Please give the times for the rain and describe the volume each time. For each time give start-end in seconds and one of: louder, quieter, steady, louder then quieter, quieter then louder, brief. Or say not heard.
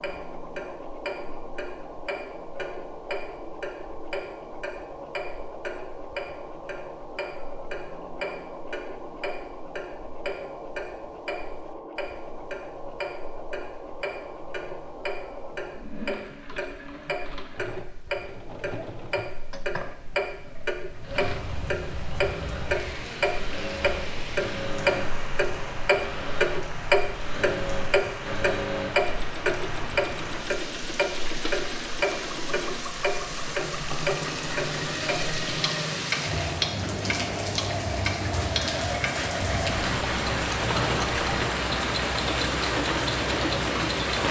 20.9-44.2 louder.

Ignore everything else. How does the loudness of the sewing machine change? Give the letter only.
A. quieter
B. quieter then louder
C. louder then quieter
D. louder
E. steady
D.